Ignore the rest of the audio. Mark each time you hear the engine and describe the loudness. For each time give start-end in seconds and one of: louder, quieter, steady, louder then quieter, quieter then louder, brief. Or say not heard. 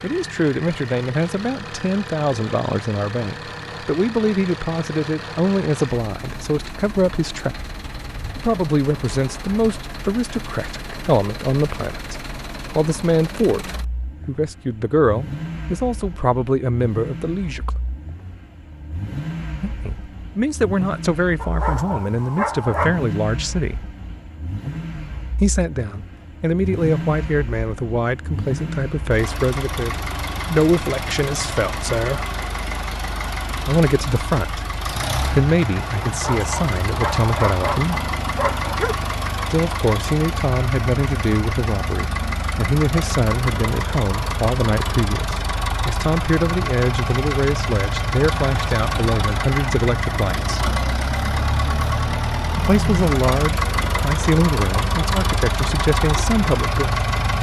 0.0-57.3 louder.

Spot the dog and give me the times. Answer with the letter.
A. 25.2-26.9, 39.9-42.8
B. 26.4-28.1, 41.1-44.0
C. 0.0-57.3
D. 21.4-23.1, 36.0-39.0
D.